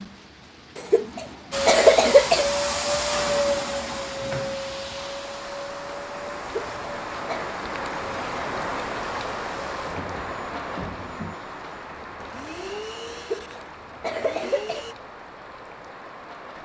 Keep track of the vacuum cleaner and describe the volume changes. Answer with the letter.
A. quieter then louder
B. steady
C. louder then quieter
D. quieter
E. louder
D.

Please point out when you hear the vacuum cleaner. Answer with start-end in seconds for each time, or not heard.
1.5-14.9.